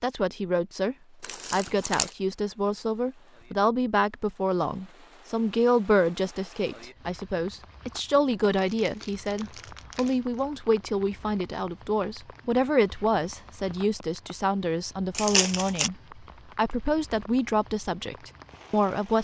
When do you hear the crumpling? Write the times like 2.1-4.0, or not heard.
1.2-2.1, 8.5-10.4, 15.1-15.9.